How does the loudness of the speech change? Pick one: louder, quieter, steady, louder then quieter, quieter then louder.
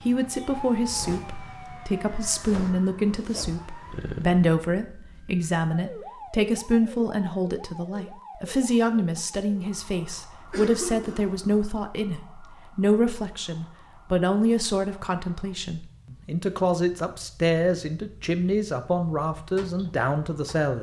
steady.